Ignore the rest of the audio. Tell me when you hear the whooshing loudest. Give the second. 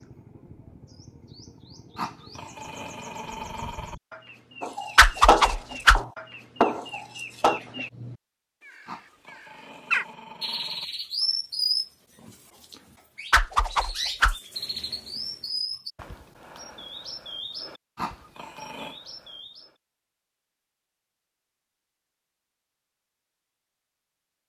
5 s.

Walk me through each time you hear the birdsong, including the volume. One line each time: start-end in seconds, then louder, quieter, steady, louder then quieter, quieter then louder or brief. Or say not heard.
0.0-19.8 louder then quieter.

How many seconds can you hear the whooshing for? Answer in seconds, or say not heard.
2 s.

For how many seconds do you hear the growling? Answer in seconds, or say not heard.
5 s.